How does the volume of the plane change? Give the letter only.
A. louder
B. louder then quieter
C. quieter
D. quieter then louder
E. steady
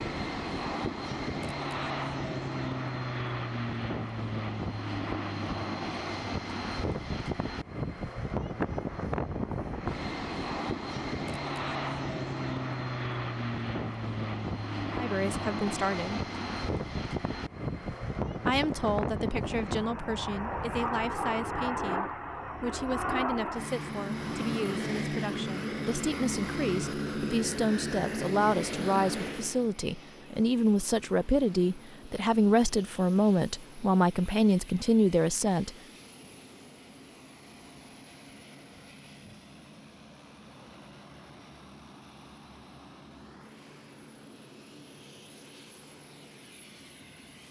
C.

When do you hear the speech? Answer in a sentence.
You can hear the speech from 14.9 to 16.2 s and from 18.4 to 35.7 s.